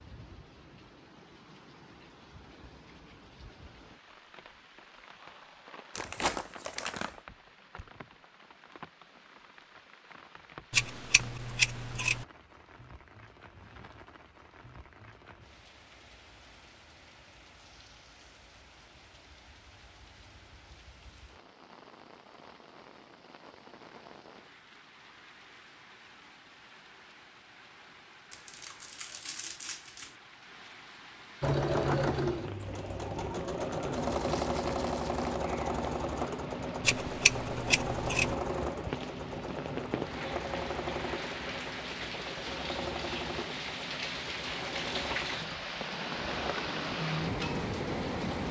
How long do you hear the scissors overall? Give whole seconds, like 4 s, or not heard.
3 s.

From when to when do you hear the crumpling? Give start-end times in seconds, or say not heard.
6.0-7.2, 28.3-30.1, 34.1-35.3.